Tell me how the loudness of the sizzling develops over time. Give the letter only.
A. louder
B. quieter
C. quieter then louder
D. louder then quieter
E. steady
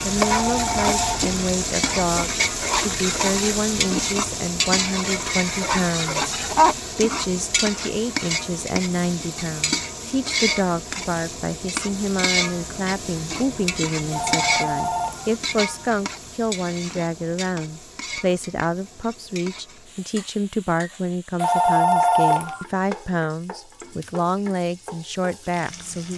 B.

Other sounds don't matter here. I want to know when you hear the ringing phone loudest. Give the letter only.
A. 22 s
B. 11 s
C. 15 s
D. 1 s
A.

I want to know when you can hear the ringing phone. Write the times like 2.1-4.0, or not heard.
0.2-1.2, 14.1-15.3, 21.4-22.6.